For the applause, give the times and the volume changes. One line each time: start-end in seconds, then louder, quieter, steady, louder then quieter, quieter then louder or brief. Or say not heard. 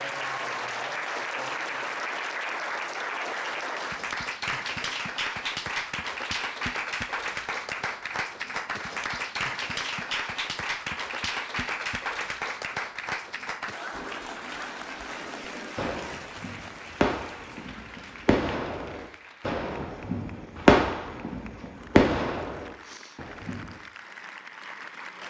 0.0-25.2 quieter.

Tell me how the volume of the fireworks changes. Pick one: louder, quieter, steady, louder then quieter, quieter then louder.
louder.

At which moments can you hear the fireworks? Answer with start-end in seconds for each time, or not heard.
13.9-23.8.